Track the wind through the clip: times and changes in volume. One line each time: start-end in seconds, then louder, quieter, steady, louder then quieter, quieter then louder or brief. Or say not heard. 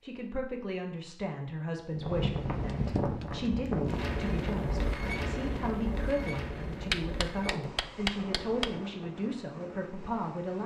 1.9-10.6 quieter.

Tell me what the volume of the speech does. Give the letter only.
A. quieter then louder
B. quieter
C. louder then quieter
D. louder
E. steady
E.